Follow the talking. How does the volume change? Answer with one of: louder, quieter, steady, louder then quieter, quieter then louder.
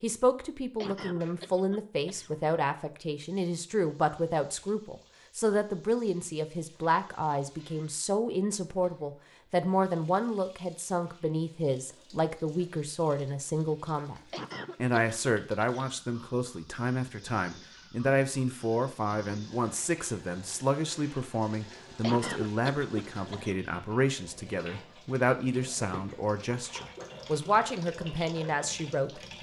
steady.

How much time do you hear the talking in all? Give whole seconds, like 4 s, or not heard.
29 s.